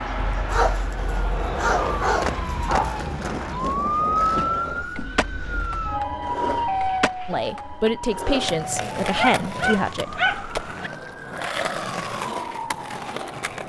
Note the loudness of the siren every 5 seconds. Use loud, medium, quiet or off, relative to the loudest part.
loud, loud, medium.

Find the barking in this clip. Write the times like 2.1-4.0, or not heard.
0.5-3.1, 9.1-10.9.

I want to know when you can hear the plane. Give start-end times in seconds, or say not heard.
0.0-3.6.